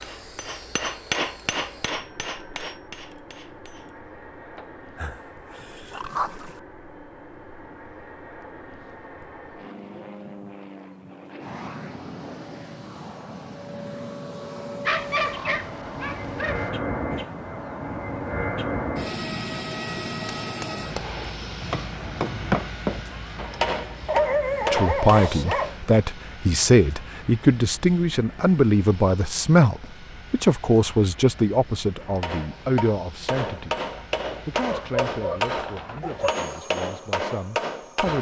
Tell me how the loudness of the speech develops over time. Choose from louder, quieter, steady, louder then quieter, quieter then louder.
quieter.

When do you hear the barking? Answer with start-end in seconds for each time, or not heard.
5.0-6.6, 14.8-16.7, 24.1-25.8, 34.6-36.4.